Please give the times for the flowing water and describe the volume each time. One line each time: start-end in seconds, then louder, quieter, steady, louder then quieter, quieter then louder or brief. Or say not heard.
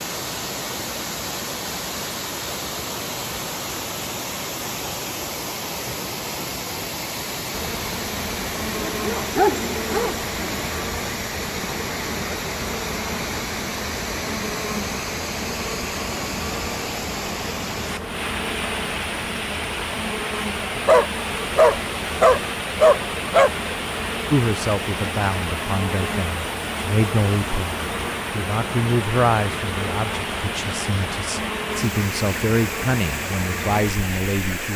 0.0-34.7 steady.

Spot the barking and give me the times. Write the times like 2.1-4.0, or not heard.
8.8-10.6, 20.8-23.5.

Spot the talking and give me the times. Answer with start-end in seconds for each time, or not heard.
24.3-34.7.